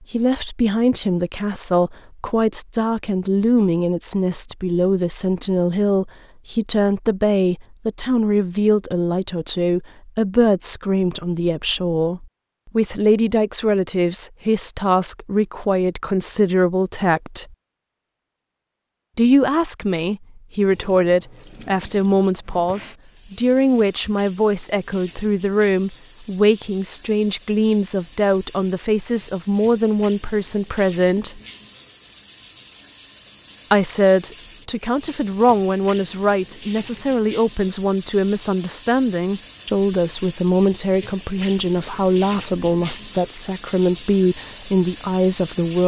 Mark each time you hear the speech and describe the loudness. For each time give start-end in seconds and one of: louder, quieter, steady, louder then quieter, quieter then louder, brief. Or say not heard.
0.1-17.4 steady
19.1-31.4 steady
33.7-45.8 steady.